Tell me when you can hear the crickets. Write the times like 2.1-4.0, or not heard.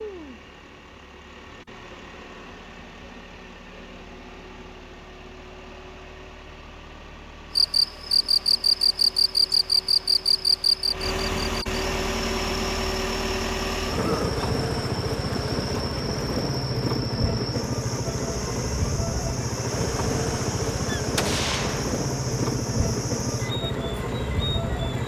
7.5-25.0.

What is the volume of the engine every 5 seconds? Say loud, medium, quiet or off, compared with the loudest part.
quiet, quiet, loud, loud, loud.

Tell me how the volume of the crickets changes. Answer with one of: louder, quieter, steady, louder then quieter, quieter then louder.
quieter.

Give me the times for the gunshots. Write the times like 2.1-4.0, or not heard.
20.9-21.9.